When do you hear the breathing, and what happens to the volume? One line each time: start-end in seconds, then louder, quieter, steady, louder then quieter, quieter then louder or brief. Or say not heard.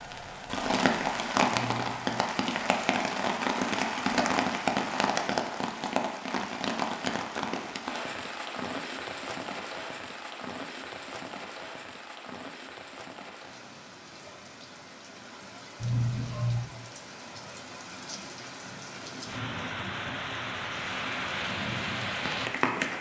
not heard.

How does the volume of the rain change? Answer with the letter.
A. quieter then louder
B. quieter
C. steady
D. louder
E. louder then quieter
A.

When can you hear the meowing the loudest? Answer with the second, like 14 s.
16 s.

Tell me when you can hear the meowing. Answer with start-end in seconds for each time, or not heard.
1.5-2.2, 15.8-16.6.